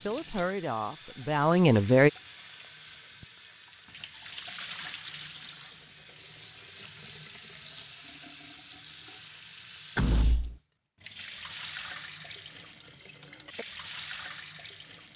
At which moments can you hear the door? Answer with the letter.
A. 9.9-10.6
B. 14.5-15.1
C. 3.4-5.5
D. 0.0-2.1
A.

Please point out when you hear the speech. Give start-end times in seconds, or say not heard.
0.0-2.1.